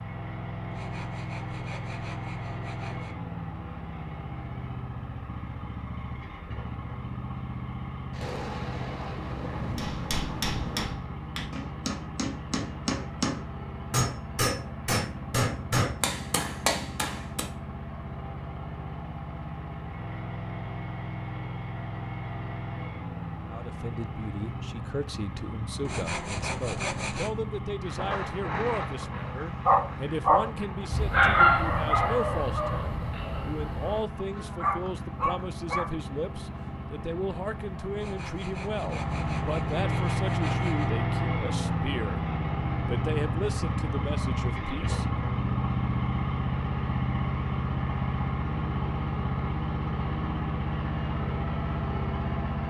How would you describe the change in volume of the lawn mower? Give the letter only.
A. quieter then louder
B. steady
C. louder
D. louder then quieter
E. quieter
C.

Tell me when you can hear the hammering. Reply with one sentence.
You can hear the hammering from 9.8 to 17.4 s.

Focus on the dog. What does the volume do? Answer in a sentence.
The loudness of the dog goes down, then up.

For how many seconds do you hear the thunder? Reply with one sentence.
You can hear the thunder for 6 seconds altogether.